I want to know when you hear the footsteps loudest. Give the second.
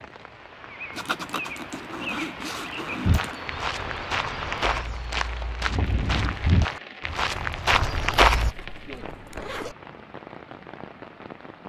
8 s.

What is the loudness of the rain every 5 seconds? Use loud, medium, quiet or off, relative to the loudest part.
loud, loud, medium.